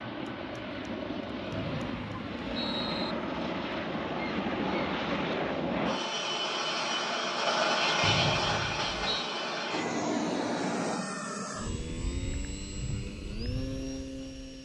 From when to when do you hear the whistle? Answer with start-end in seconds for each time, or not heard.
1.5-3.1, 8.0-9.3.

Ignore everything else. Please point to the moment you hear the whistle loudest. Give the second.
8 s.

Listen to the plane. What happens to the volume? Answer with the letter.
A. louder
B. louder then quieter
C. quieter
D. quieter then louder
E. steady
B.